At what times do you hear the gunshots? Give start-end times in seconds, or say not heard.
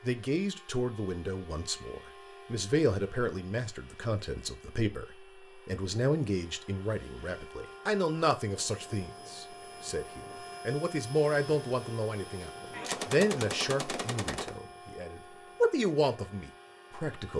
12.7-14.6.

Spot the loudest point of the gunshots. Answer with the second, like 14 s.
13 s.